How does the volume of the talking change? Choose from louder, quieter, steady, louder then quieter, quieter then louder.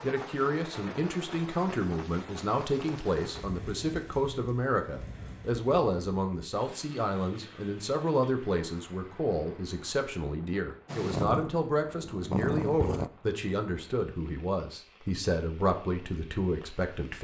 steady.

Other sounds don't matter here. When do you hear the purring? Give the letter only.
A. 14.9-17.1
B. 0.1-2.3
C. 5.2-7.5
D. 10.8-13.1
D.